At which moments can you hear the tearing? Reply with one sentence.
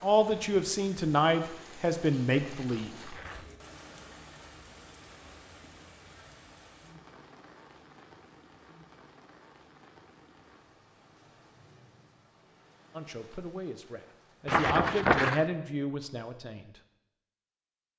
The tearing can be heard from 2.3 to 3.5 s and from 14.4 to 15.4 s.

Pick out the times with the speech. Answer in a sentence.
You can hear the speech from 0.0 to 3.1 s and from 12.9 to 16.8 s.